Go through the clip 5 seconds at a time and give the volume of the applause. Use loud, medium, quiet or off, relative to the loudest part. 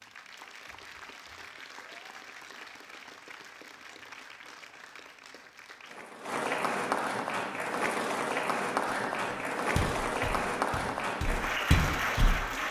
quiet, loud, loud.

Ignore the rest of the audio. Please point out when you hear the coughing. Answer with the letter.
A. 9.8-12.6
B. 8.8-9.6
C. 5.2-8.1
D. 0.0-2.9
B.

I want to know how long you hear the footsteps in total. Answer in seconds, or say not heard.
3 s.